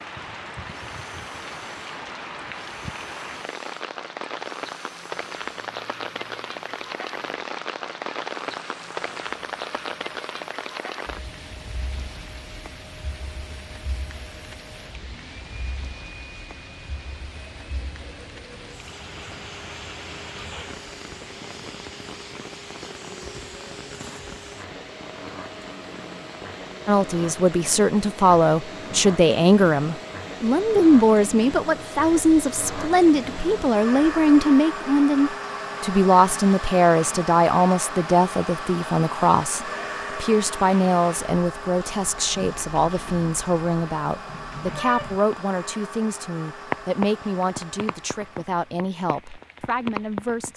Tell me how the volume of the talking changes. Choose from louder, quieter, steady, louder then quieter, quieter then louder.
quieter.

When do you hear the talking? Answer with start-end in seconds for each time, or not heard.
26.9-50.5.